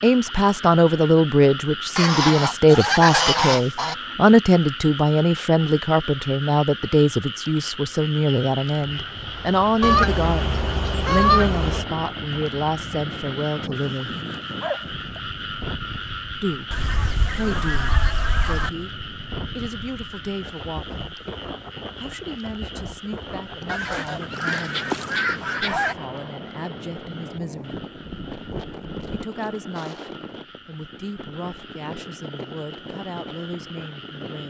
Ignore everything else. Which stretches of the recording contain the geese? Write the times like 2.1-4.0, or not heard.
1.9-4.0, 9.8-11.8, 16.7-18.7, 23.6-25.9, 27.8-29.2.